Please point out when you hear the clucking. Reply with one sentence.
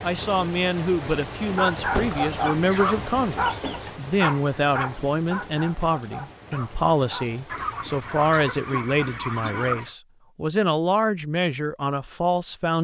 You can hear the clucking from 1.9 to 3.9 s and from 7.5 to 9.9 s.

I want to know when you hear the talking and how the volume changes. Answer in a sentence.
The talking can be heard from 0.0 to 12.8 s, at a steady volume.